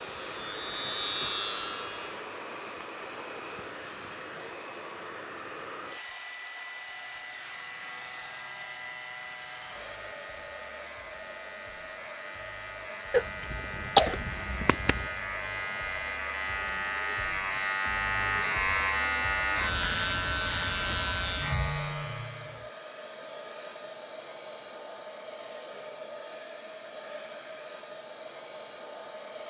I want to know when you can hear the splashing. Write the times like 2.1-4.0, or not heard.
not heard.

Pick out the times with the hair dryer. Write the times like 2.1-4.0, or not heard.
0.0-29.4.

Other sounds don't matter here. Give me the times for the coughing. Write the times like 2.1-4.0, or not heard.
13.1-15.1.